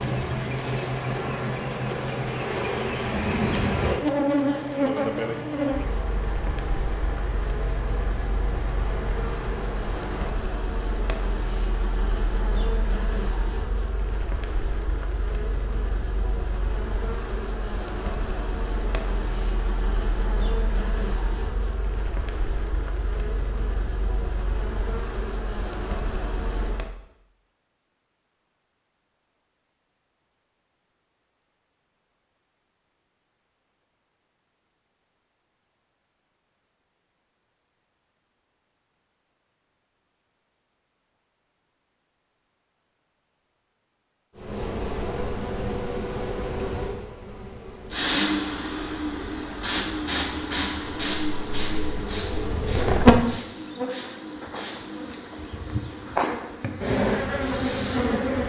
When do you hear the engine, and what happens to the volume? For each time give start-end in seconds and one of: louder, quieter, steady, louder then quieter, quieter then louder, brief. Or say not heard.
0.0-10.3 quieter
47.9-58.1 quieter.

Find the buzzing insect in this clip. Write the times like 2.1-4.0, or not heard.
0.0-26.9, 44.4-58.4.